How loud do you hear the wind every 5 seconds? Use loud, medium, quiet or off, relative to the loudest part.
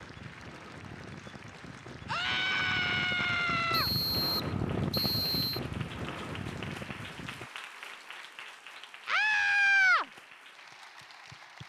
loud, loud, off.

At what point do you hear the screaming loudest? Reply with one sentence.
The loudest moment of the screaming is at 10 seconds.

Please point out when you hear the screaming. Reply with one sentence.
The screaming can be heard from 2.0 to 3.9 s and from 9.1 to 10.1 s.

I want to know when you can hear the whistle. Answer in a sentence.
The whistle can be heard from 3.7 to 5.6 s.